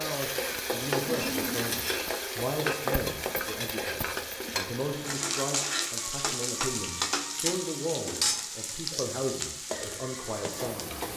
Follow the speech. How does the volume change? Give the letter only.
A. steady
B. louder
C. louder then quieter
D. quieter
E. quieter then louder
A.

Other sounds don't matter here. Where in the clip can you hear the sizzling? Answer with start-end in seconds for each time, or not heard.
0.0-11.1.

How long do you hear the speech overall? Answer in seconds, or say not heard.
11 s.